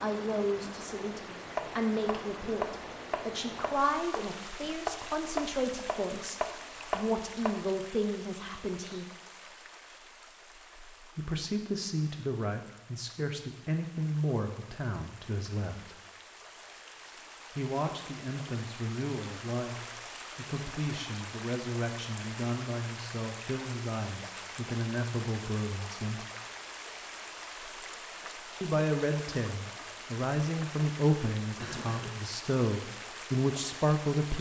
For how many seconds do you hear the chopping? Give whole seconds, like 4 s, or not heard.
6 s.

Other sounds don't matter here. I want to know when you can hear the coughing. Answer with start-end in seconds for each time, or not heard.
31.6-32.2.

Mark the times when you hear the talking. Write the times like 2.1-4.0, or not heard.
0.0-9.1, 11.2-15.9, 17.5-26.2, 28.6-34.3.